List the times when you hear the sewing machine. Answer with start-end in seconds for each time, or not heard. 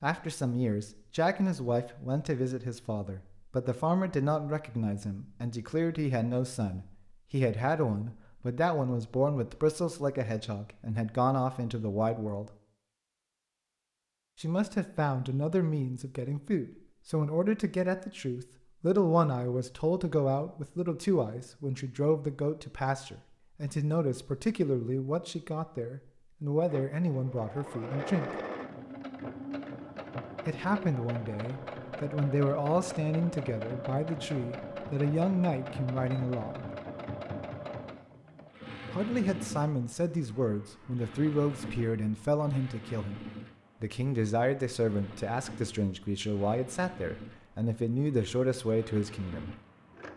26.6-50.1.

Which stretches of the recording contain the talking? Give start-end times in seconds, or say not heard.
0.0-12.5, 14.4-28.3, 30.4-36.6, 38.9-49.5.